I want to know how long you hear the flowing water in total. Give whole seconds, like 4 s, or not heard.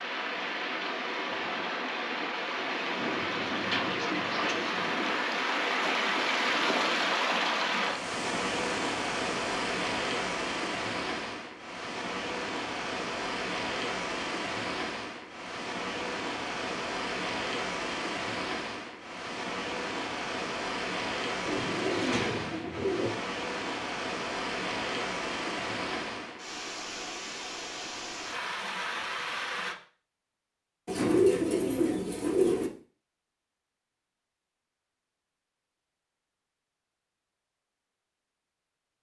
30 s.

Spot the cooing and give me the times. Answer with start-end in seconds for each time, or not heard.
3.0-4.9, 21.4-23.1, 30.9-32.7.